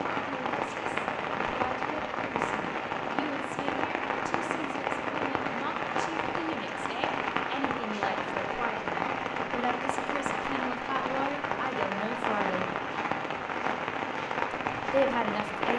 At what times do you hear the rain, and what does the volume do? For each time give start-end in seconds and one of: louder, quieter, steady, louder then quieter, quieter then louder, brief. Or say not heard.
0.0-15.7 steady.